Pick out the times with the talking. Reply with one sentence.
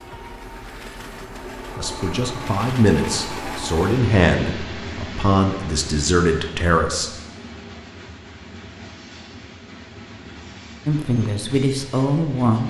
You can hear the talking from 1.8 to 7.1 s and from 10.8 to 12.6 s.